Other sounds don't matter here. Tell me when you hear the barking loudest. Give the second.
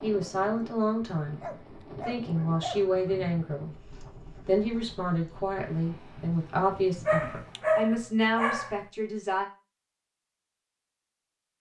8 s.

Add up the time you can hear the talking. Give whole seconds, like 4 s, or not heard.
8 s.